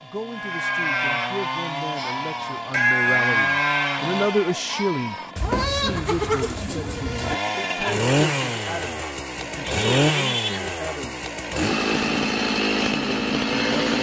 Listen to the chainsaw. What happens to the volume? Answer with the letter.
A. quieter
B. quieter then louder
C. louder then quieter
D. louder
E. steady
D.